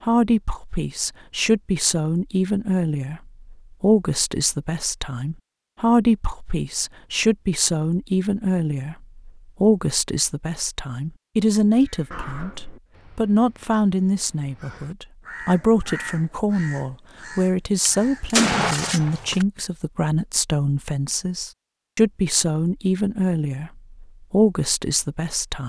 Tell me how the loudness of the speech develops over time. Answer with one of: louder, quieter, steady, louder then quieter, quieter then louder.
steady.